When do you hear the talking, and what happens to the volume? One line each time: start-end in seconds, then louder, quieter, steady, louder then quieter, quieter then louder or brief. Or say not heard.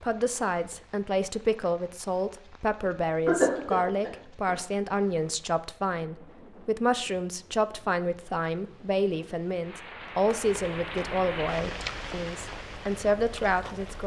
0.0-14.0 steady.